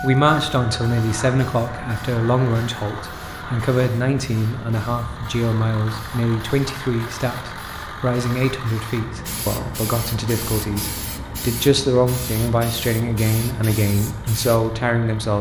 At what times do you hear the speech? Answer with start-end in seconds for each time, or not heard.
0.0-15.3.